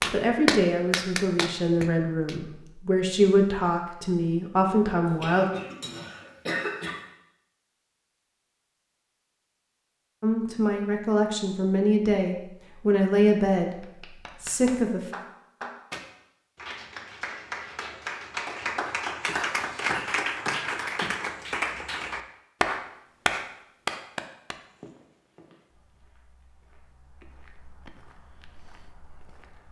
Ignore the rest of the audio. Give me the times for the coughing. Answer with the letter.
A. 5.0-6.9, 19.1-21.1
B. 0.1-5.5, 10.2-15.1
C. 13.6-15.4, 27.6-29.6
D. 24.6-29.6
A.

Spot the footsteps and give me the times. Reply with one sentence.
You can hear the footsteps from 24.6 to 29.6 s.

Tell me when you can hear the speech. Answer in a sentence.
You can hear the speech from 0.1 to 5.5 s and from 10.2 to 15.1 s.